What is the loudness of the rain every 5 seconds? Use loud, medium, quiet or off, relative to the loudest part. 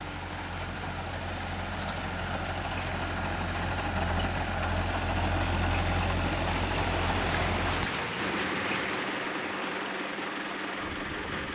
medium, loud, medium.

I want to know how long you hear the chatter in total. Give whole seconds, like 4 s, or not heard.
not heard.